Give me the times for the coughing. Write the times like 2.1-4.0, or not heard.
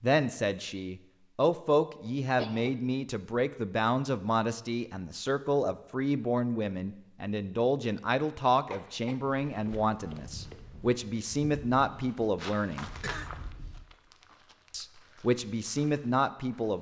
2.0-2.7, 8.7-9.4, 12.8-13.8.